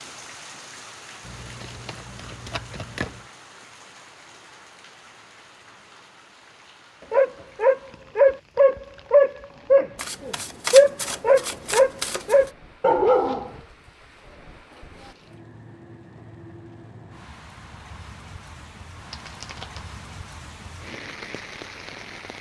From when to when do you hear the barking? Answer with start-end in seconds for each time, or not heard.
7.1-13.6.